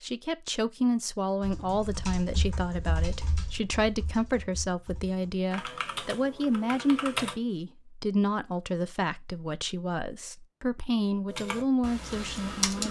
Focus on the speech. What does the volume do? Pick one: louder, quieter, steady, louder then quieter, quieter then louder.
steady.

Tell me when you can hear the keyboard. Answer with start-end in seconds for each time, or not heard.
1.4-7.3, 11.2-12.8.